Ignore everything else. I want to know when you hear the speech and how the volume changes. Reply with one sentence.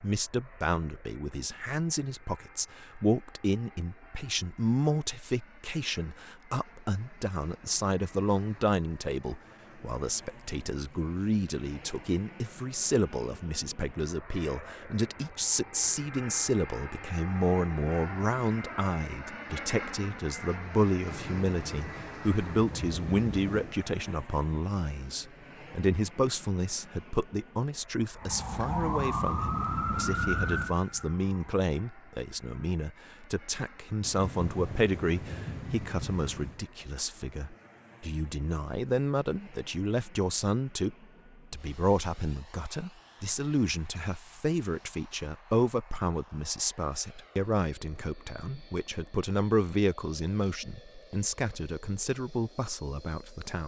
You can hear the speech from 0.0 to 53.6 s, at a steady volume.